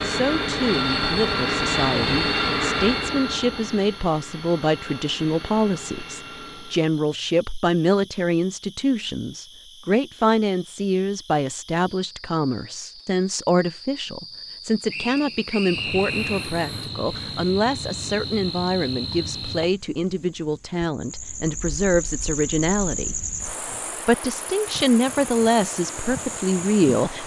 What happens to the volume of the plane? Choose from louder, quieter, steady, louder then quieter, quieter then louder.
quieter.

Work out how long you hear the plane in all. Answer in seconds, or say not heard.
7 s.